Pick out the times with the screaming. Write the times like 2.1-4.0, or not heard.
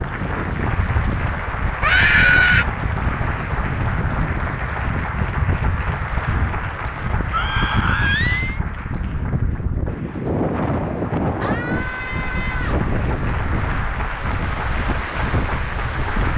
1.8-2.6, 7.3-8.6, 11.4-12.8.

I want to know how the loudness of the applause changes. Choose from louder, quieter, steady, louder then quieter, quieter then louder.
quieter then louder.